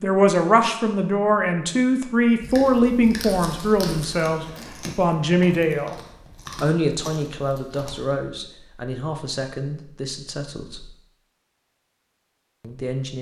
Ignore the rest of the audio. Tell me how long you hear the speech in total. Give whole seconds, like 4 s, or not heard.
11 s.